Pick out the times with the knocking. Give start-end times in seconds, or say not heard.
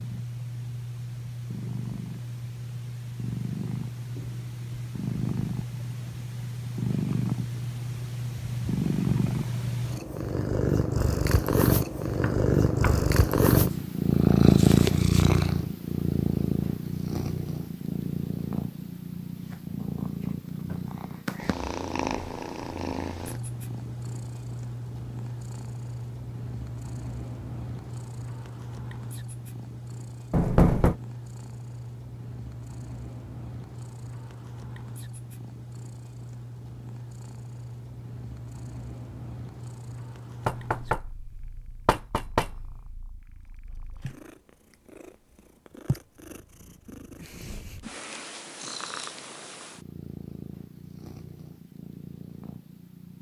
12.2-13.1, 30.3-30.9, 40.5-41.0, 41.9-42.5.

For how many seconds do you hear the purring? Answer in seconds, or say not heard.
53 s.